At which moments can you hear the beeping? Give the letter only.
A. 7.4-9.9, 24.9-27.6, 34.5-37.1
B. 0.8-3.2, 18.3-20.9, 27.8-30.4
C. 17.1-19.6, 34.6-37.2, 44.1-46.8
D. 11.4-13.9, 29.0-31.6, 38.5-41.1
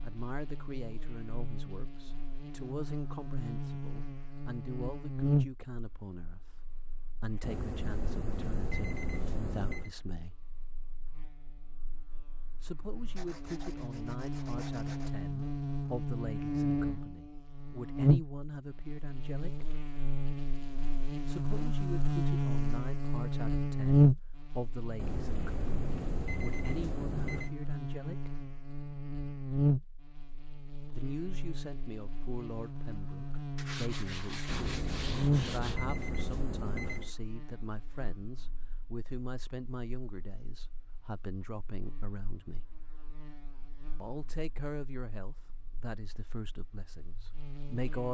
A.